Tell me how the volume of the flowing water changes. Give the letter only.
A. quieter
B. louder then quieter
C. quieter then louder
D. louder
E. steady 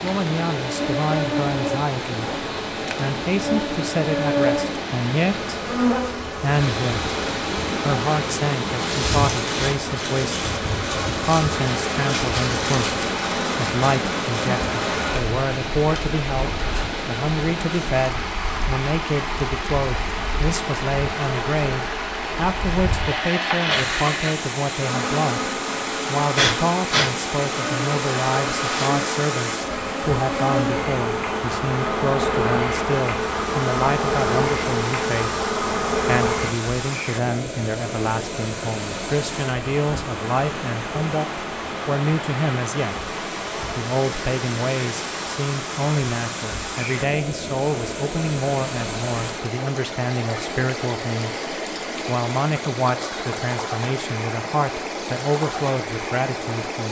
E.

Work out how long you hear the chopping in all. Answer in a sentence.
You can't hear the chopping here.